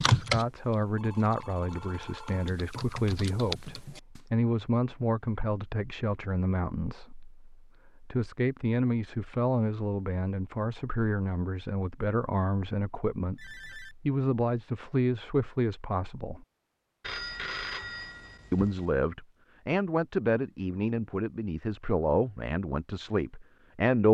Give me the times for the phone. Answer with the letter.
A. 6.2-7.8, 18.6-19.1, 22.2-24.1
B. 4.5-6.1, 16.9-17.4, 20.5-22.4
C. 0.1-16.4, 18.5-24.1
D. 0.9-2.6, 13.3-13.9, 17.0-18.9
D.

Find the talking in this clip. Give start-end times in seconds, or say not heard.
0.1-16.4, 18.5-24.1.